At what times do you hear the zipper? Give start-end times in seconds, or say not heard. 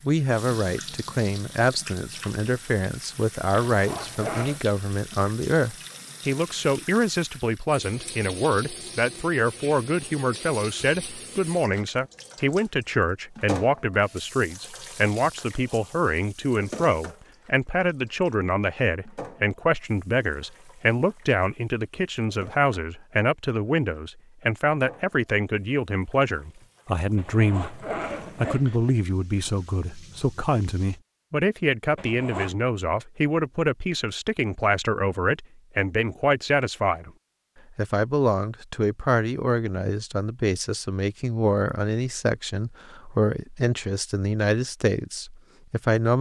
3.7-4.6, 27.1-28.8, 31.9-32.5.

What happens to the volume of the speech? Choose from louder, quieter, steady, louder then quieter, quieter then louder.
steady.